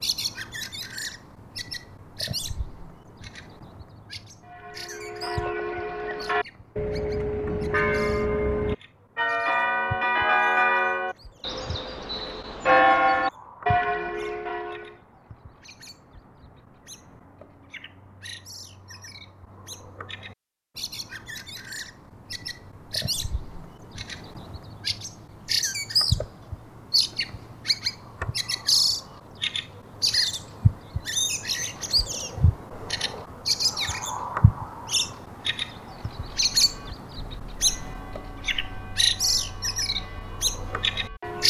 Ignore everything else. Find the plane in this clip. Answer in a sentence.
The plane can't be heard in this clip.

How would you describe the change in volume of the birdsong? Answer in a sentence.
The loudness of the birdsong goes down, then up.